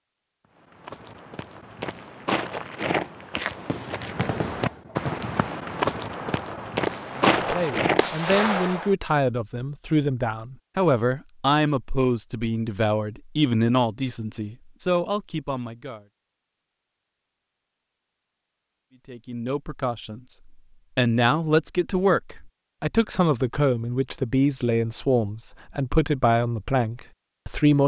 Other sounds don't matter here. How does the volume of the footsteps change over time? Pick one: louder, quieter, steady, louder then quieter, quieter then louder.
louder.